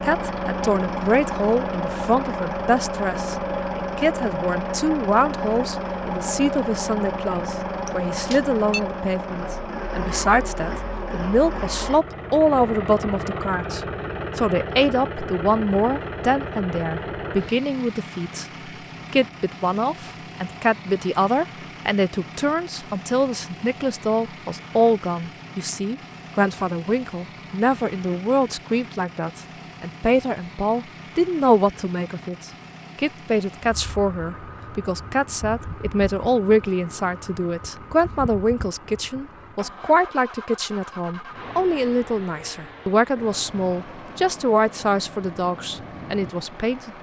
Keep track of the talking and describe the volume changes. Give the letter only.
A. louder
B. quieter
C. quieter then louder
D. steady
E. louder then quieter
D.